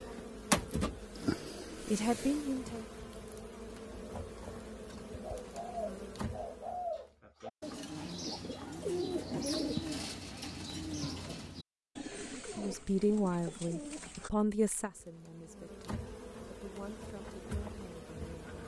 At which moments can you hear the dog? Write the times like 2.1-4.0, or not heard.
not heard.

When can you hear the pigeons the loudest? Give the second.
10 s.